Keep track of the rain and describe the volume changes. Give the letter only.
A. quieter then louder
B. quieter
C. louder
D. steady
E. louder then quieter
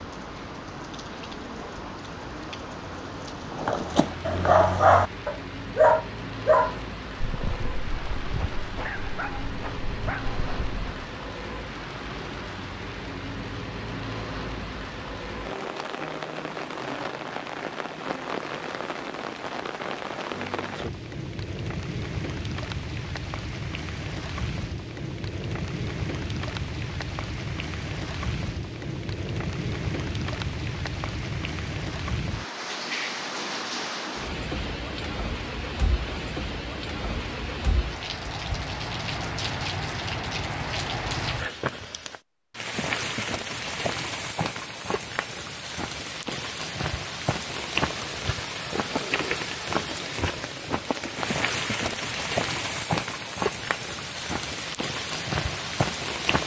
C.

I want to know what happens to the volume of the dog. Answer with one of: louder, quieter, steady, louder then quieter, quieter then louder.
quieter.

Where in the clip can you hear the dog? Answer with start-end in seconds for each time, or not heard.
3.5-11.1.